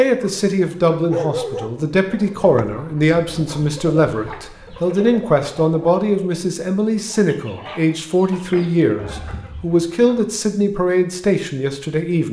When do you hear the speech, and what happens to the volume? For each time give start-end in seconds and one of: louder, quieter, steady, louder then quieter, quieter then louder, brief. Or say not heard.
0.0-12.2 steady.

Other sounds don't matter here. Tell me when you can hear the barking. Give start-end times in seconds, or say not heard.
0.1-2.6.